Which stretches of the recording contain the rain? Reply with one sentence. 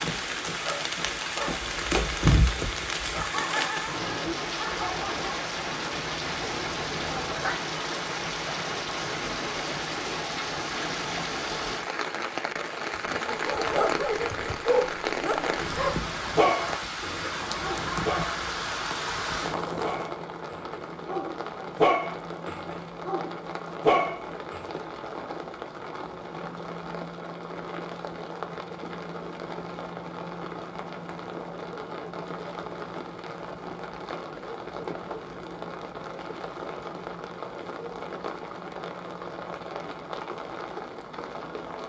You can hear the rain from 0.0 to 41.8 s.